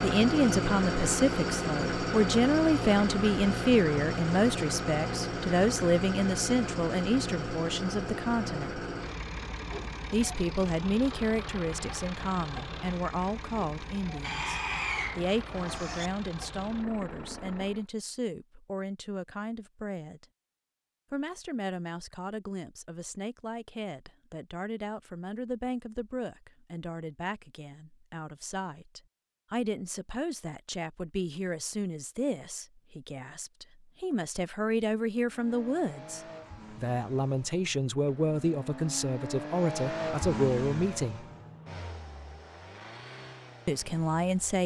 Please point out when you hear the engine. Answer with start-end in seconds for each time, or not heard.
0.0-17.9, 35.2-44.6.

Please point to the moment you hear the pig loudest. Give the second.
15 s.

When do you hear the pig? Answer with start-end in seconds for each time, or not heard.
14.2-16.1.